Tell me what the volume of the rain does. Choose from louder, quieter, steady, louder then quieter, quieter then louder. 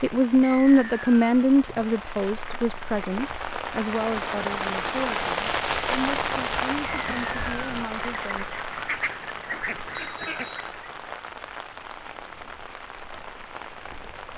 louder then quieter.